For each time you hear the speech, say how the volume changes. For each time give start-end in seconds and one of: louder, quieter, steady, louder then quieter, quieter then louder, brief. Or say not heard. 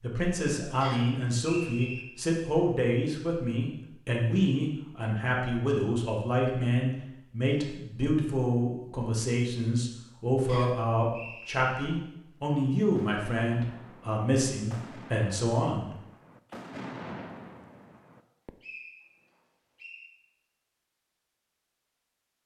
0.0-15.9 steady.